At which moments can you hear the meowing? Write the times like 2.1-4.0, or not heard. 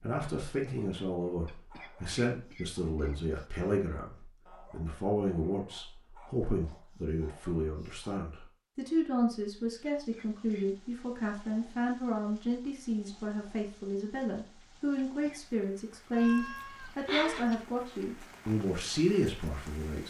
16.1-17.6.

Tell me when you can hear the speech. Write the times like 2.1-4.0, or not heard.
0.0-20.0.